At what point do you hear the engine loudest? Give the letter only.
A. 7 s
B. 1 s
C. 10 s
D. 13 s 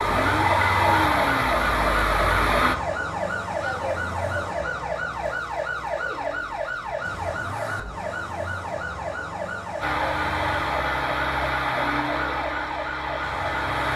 B.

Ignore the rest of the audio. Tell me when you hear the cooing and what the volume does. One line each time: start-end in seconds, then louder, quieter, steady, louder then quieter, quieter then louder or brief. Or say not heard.
not heard.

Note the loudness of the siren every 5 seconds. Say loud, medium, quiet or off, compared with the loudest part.
loud, loud, medium.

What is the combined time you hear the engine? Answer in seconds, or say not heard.
7 s.